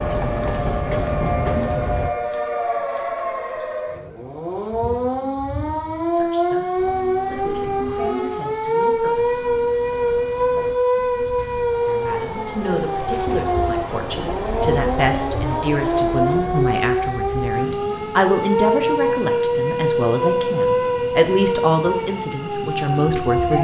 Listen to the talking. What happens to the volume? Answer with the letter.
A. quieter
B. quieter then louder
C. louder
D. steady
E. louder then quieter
C.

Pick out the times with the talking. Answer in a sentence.
The talking can be heard from 5.8 to 9.6 s and from 11.8 to 23.5 s.